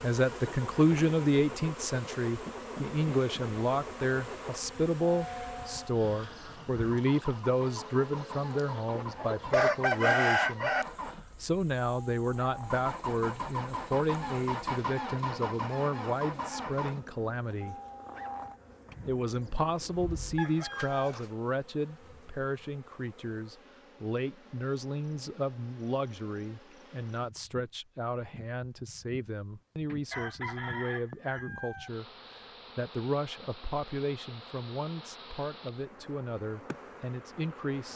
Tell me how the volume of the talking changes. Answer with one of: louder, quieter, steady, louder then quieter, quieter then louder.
quieter.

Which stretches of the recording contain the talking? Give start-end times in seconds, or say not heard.
0.0-17.8, 19.1-37.9.